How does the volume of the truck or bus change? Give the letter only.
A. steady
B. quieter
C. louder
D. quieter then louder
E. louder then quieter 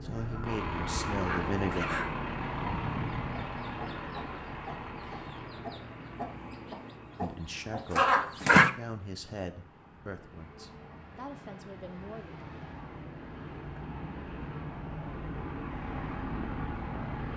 D.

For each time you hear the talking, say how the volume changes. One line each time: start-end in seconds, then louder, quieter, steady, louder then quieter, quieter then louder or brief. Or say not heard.
0.0-1.9 brief
7.2-12.4 quieter then louder.